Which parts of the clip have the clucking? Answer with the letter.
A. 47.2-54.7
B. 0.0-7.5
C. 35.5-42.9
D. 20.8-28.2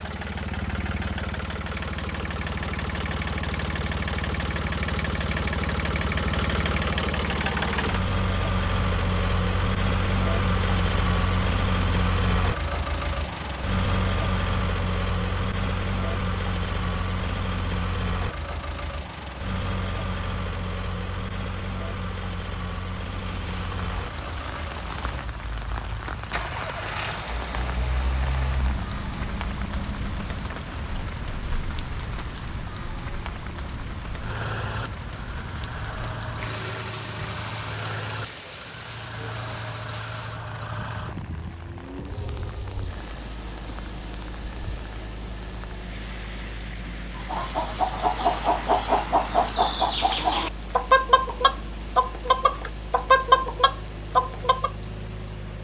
A.